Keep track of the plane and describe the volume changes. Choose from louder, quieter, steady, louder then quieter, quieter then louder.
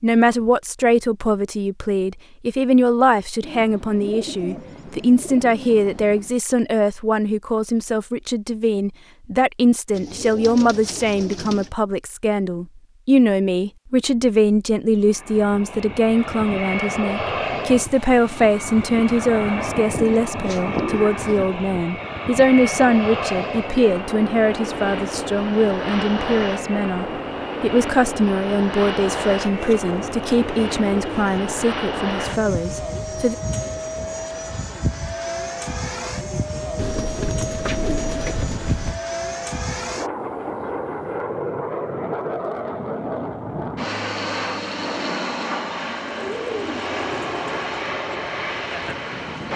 steady.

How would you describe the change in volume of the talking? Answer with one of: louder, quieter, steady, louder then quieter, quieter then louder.
steady.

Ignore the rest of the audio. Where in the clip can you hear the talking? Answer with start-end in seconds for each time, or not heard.
0.0-33.4.